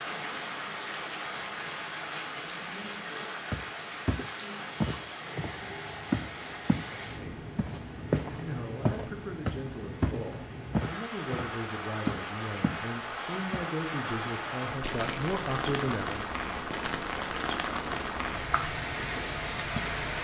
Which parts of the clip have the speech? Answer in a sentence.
You can hear the speech from 7.0 to 7.5 s and from 8.3 to 16.2 s.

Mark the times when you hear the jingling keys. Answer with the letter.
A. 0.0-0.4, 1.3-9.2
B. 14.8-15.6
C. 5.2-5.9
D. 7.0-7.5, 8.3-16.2
B.